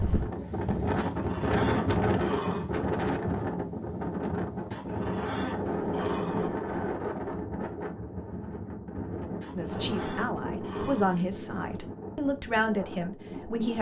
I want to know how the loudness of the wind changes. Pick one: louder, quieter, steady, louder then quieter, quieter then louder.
quieter.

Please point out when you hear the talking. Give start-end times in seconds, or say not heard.
9.6-13.7.